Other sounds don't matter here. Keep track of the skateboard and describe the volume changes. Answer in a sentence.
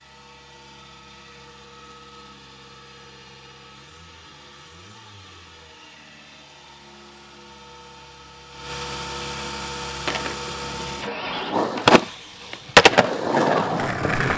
The volume of the skateboard goes up, then down.